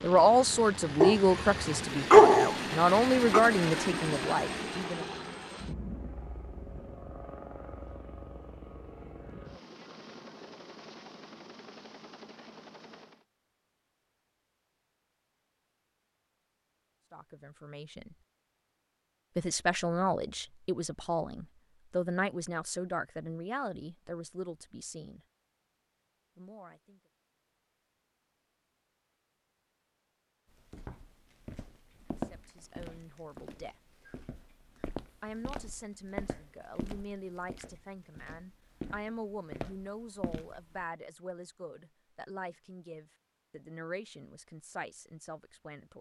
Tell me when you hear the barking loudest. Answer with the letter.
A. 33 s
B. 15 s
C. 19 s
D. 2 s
D.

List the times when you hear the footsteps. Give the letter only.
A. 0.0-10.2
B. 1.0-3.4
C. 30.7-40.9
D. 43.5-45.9
C.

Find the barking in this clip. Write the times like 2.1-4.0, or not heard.
1.0-3.4.